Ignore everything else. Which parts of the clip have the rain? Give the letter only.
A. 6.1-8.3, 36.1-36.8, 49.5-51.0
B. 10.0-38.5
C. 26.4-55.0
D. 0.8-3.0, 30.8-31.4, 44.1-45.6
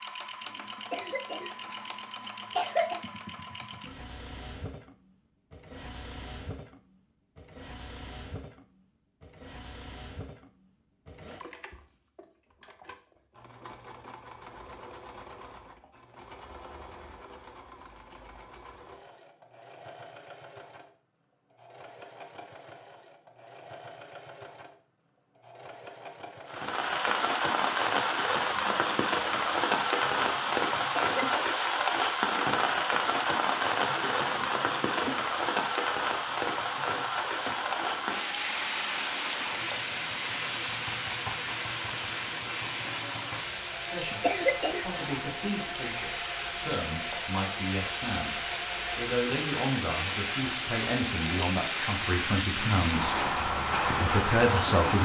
C.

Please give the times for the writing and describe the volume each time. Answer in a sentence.
You can't hear the writing here.